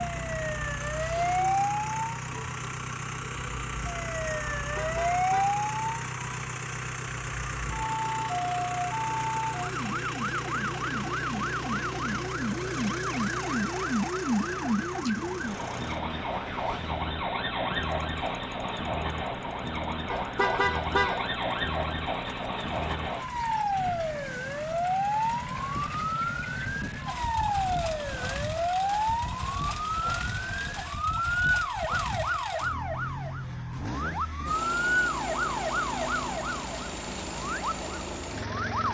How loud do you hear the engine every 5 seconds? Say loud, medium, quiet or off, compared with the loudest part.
loud, loud, loud, medium, medium, loud, loud, loud.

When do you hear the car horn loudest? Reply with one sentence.
The loudest moment of the car horn is at 21 seconds.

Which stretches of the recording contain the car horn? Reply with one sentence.
The car horn can be heard from 4.5 to 5.6 s and from 20.1 to 21.2 s.